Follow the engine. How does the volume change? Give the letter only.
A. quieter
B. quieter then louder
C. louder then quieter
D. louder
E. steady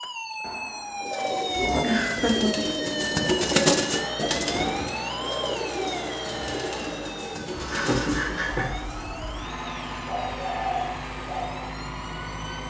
E.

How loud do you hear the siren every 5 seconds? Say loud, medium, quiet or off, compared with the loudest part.
loud, medium, quiet.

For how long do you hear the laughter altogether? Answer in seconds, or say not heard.
2 s.